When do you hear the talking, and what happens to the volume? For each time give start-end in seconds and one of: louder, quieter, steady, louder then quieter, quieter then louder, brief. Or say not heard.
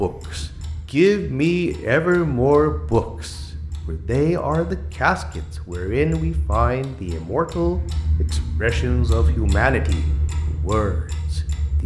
0.0-11.8 quieter.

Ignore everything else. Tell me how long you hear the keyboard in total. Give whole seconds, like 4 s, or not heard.
not heard.